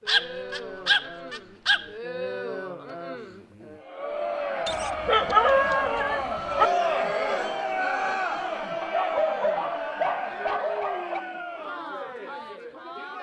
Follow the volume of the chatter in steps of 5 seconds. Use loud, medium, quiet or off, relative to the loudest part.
medium, loud, medium.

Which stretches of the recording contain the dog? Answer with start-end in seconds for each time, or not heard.
0.1-1.9, 4.7-6.7, 8.8-11.2.